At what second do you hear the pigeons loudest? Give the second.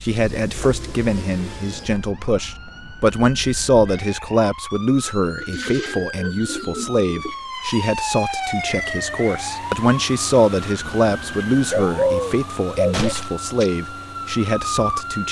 12 s.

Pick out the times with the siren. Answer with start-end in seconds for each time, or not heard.
0.0-15.2.